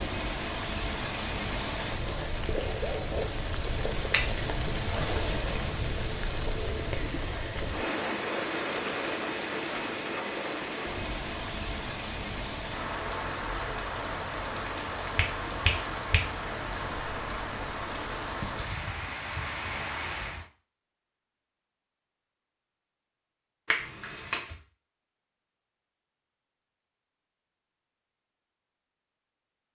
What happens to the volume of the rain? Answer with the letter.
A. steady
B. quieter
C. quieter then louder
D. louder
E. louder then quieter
A.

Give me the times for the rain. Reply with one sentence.
You can hear the rain from 0.0 to 20.5 s.